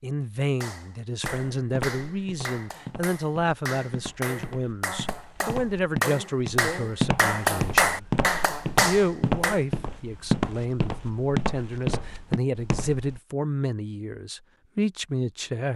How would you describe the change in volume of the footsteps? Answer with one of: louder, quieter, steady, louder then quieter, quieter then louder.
louder.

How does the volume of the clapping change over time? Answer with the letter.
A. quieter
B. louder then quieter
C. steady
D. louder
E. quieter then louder
D.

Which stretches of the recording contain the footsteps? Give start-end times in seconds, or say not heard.
1.2-13.2.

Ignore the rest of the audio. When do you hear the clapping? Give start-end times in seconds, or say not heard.
0.6-9.7.